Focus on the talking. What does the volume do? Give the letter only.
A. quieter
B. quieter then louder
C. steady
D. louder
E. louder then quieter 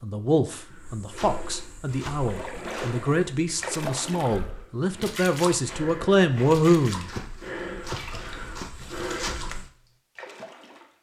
D.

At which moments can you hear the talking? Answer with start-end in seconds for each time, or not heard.
0.0-7.1.